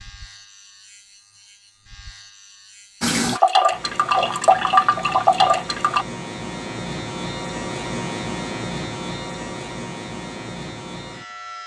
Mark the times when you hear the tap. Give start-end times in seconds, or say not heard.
3.0-6.0.